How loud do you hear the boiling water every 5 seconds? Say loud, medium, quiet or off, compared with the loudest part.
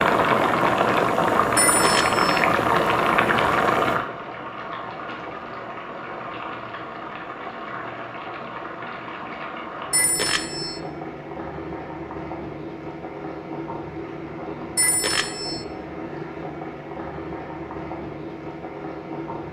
loud, quiet, quiet, quiet.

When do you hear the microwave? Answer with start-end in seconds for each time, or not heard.
not heard.